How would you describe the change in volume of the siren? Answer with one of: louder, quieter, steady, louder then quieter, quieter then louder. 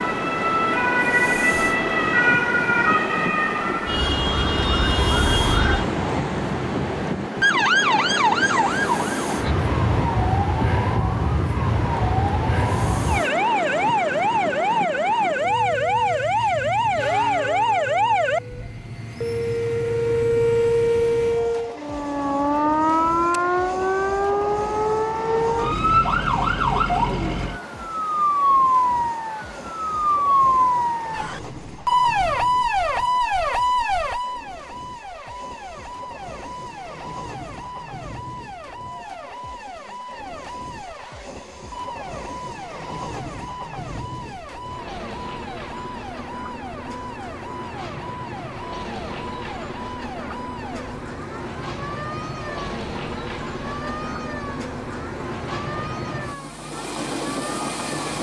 quieter.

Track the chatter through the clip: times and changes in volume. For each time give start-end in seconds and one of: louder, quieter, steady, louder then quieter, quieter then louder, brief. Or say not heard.
not heard.